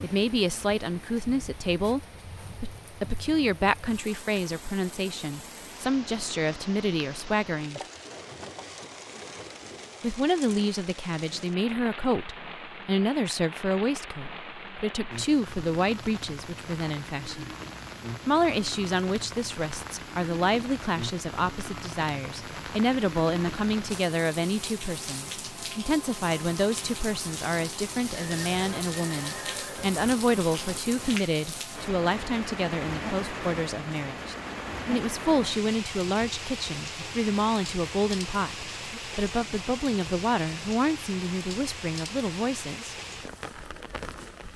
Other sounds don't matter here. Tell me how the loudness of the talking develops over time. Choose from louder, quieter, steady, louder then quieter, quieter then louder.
steady.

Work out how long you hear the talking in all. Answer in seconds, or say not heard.
40 s.